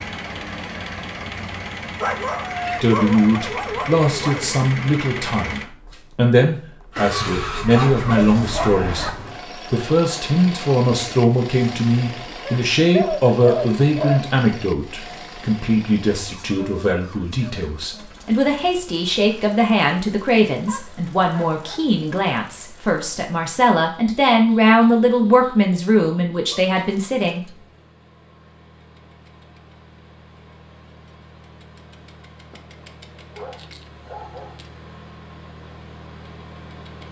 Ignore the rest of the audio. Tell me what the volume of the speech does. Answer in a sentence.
The volume of the speech stays about the same.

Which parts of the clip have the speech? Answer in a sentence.
You can hear the speech from 2.8 to 27.4 s.